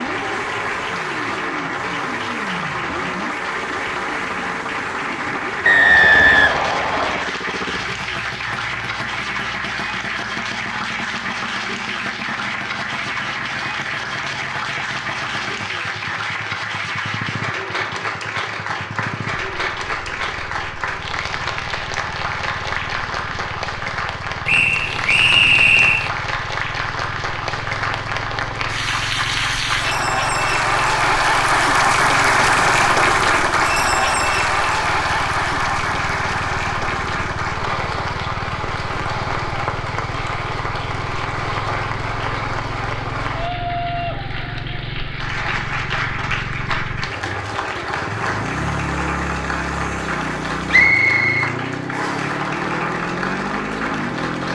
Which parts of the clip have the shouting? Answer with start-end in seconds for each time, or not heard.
not heard.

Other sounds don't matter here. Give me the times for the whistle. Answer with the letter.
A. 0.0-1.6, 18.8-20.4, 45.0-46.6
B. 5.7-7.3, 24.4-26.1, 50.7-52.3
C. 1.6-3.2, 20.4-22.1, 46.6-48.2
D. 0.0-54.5
B.